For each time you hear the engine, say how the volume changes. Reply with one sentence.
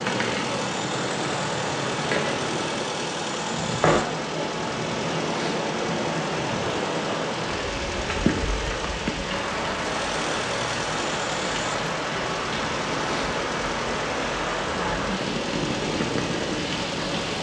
The engine can be heard from 0.0 to 17.3 s, at a steady volume.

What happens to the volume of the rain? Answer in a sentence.
The volume of the rain stays about the same.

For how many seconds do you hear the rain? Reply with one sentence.
You can hear the rain for 17 seconds altogether.